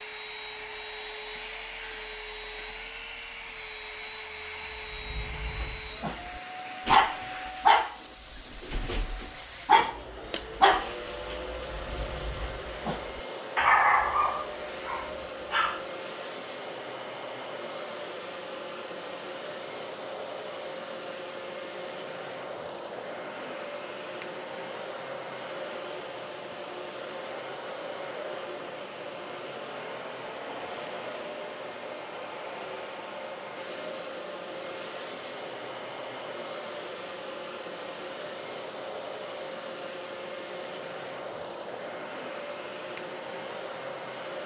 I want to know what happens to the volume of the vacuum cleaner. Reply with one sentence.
The volume of the vacuum cleaner stays about the same.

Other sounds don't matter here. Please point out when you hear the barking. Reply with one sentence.
The barking can be heard from 4.9 to 15.8 s.